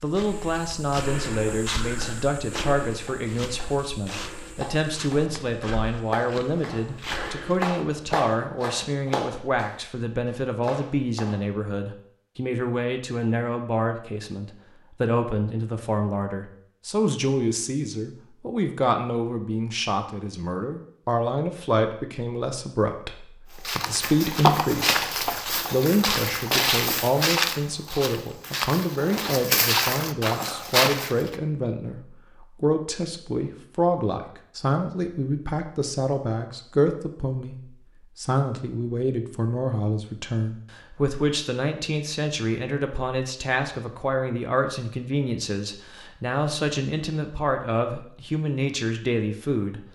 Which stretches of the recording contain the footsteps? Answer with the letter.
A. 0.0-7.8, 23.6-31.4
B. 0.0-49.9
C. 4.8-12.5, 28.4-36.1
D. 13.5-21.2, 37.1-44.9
A.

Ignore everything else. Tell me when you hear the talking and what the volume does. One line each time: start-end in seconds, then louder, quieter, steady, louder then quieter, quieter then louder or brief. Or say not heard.
0.0-49.9 steady.